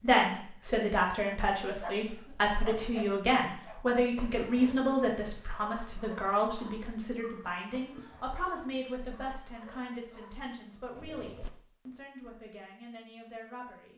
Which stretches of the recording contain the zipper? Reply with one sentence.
You can't hear the zipper here.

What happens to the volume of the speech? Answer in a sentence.
The loudness of the speech goes down.